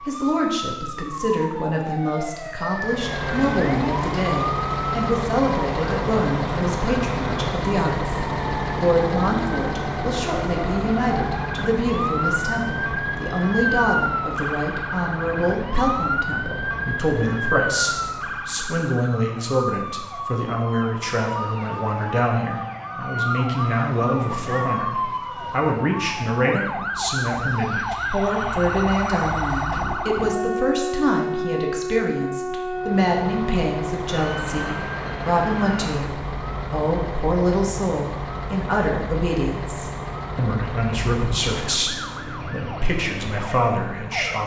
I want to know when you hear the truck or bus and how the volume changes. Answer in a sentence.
You can hear the truck or bus from 2.7 to 18.6 s, getting quieter; and from 32.7 to 44.4 s, getting quieter.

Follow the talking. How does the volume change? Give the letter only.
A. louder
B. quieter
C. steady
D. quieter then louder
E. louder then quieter
C.